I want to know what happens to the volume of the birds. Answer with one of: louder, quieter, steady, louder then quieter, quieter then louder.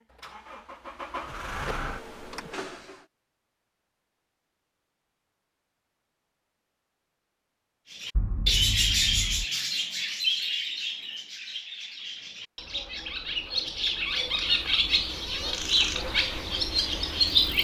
quieter then louder.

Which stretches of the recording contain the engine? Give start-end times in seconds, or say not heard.
0.0-3.0, 16.1-17.5.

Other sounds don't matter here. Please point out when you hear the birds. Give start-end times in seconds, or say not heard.
7.9-17.5.